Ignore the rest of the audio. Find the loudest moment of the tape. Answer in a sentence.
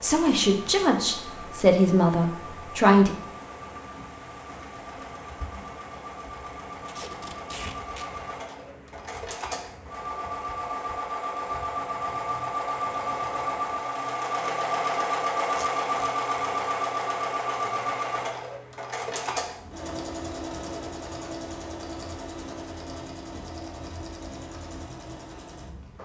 The volume of the tape peaks at 8 seconds.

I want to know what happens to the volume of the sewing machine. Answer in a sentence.
The loudness of the sewing machine goes up, then down.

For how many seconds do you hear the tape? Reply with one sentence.
The tape can be heard for 2 seconds in total.